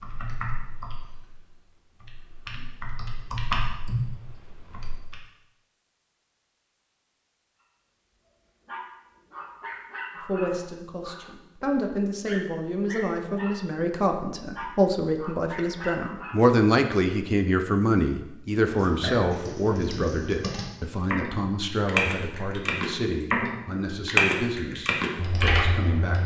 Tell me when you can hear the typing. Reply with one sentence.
You can hear the typing from 0.0 to 5.2 s and from 18.6 to 26.2 s.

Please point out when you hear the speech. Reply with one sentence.
You can hear the speech from 10.2 to 26.2 s.